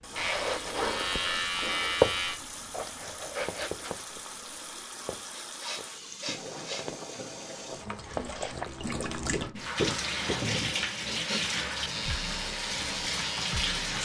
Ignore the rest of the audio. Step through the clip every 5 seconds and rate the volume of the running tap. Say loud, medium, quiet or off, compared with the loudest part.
medium, medium, loud.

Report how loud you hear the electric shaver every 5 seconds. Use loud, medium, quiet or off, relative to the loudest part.
loud, off, medium.